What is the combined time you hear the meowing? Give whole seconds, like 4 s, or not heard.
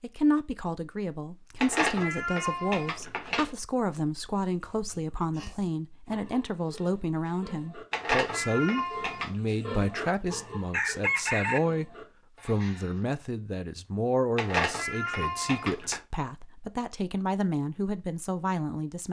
5 s.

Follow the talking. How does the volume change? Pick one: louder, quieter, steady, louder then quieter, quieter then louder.
steady.